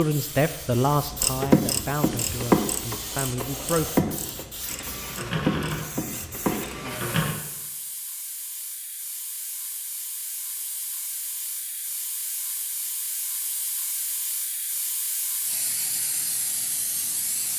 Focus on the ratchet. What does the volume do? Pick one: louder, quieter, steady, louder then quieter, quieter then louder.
quieter.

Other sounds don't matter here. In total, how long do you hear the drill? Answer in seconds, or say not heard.
7 s.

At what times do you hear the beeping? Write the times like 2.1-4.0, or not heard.
not heard.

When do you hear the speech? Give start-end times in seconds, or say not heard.
0.0-4.1.